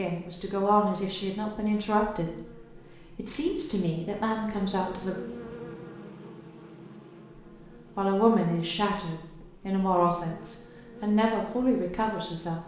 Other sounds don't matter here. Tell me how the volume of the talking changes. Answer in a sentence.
The volume of the talking stays about the same.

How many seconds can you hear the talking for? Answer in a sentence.
The talking can be heard for 10 seconds in total.